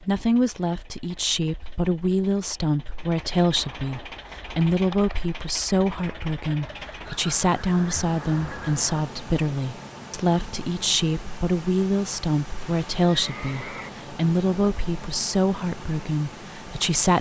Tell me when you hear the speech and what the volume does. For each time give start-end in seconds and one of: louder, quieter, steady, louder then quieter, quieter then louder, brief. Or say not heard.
0.0-17.1 steady.